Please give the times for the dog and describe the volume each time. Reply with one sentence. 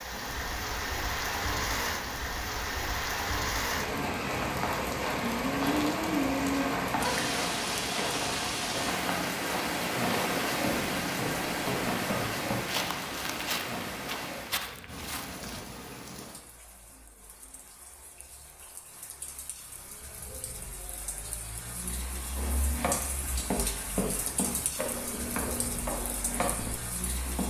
The dog can't be heard in this clip.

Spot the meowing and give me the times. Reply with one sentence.
You can't hear the meowing here.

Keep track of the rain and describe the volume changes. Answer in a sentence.
The volume of the rain goes down, then up.